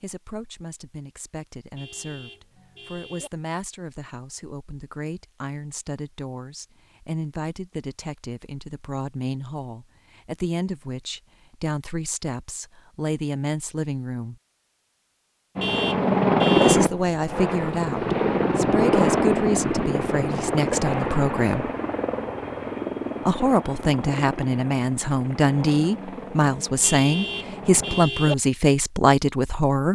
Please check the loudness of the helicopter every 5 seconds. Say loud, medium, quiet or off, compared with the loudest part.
off, off, off, loud, medium, quiet.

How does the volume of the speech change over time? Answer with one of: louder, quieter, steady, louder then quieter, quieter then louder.
louder.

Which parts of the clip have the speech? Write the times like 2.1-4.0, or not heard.
0.0-14.3, 16.6-21.7, 23.2-29.9.